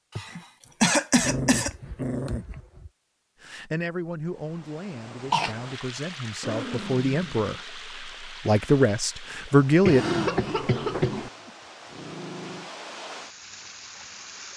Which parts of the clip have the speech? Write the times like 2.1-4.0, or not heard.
3.4-10.1.